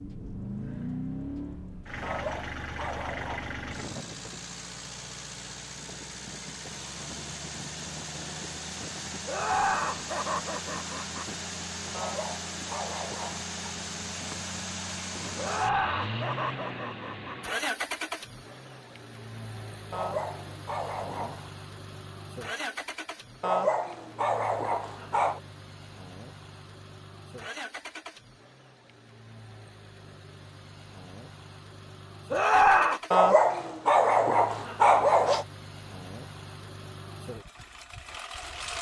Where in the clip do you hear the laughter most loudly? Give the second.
33 s.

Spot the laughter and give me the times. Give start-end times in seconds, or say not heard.
9.2-11.2, 15.3-17.4, 32.3-33.0.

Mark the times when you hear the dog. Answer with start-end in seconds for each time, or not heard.
2.0-3.5, 11.9-13.4, 19.9-21.5, 23.4-25.4, 33.1-35.5.